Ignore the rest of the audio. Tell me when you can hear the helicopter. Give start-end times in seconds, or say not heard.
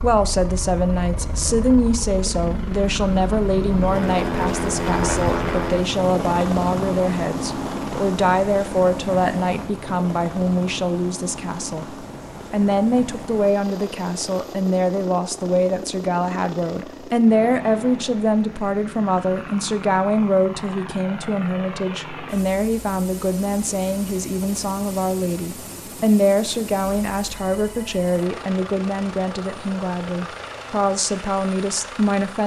0.0-32.4.